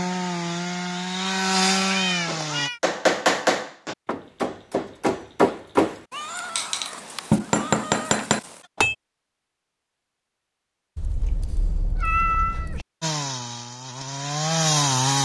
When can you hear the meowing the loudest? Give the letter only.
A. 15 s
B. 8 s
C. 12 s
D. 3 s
C.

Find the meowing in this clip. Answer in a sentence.
The meowing can be heard from 1.8 to 2.8 s, from 6.1 to 8.7 s and from 10.9 to 12.8 s.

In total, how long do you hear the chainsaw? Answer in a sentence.
The chainsaw can be heard for 5 seconds in total.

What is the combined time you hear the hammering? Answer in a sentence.
You can hear the hammering for 7 seconds altogether.